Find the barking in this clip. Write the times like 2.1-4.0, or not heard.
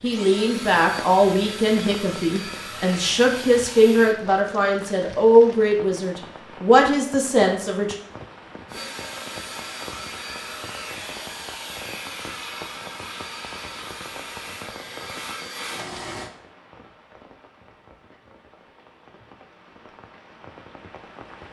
not heard.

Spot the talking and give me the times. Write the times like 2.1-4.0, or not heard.
0.0-8.0.